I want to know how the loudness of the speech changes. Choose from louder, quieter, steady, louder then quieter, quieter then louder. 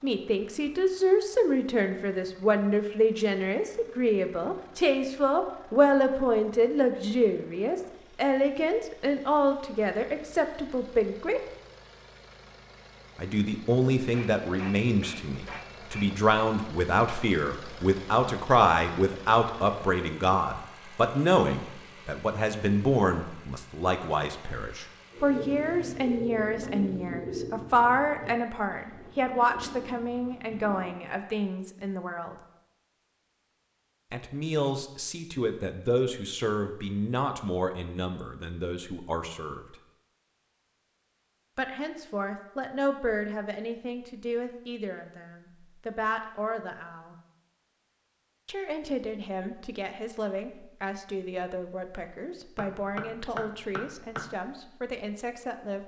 quieter.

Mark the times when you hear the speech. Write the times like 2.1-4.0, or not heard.
0.0-11.4, 13.2-32.4, 34.1-39.8, 41.5-47.1, 48.5-55.8.